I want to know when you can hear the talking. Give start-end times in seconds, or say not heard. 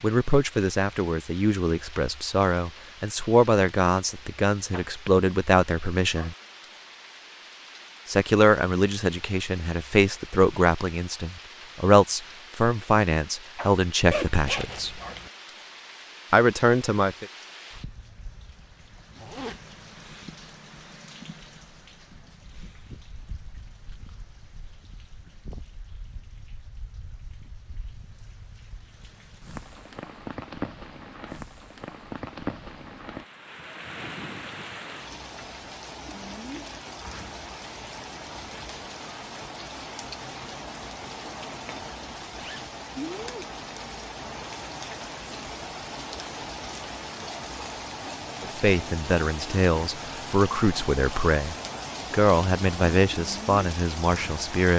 0.0-6.3, 8.1-15.0, 16.3-17.2, 48.4-54.7.